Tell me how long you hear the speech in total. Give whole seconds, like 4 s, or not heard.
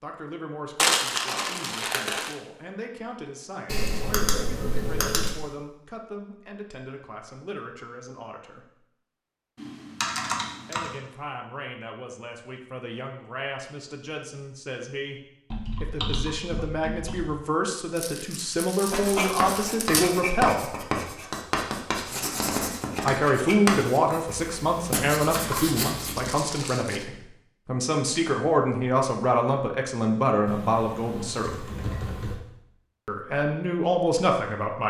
29 s.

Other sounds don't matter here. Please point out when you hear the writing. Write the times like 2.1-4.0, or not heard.
18.9-26.1.